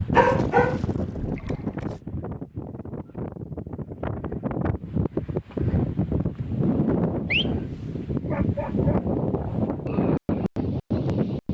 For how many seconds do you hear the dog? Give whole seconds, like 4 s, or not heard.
3 s.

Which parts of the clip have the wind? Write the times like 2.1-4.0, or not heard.
0.0-11.5.